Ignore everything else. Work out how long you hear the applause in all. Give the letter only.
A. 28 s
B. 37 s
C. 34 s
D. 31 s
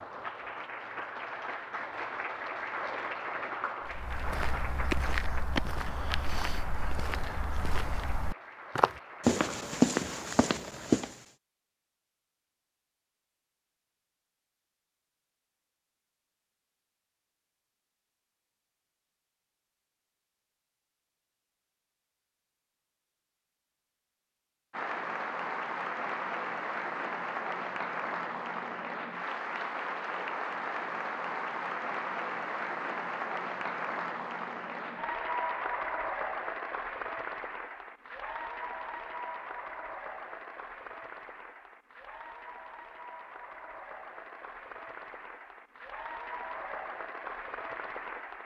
C.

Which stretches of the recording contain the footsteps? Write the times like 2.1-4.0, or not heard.
3.9-11.2.